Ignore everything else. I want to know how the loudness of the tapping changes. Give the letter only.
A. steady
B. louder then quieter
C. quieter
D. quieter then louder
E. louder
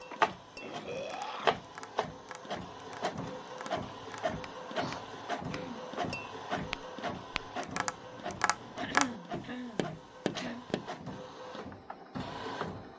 E.